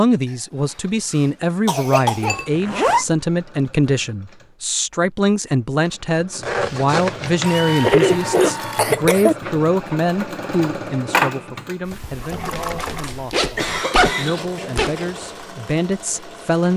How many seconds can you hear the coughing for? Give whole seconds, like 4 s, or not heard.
5 s.